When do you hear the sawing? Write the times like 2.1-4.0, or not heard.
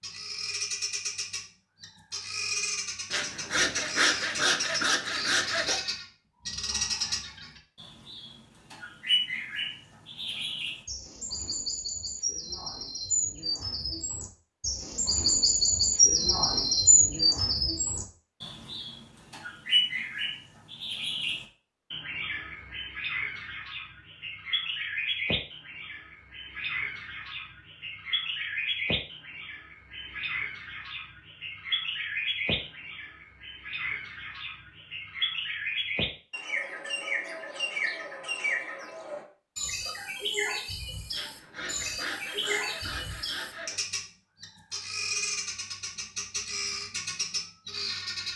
3.1-5.8, 41.1-43.8.